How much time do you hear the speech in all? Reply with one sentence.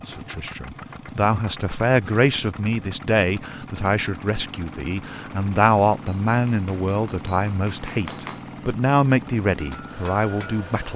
The speech can be heard for 11 seconds in total.